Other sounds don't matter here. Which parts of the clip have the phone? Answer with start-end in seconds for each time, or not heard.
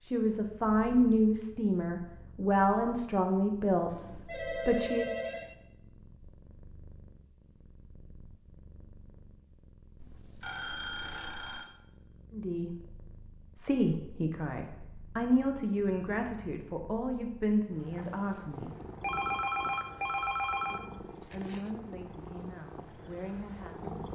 3.9-5.5, 10.0-11.7, 19.0-20.8.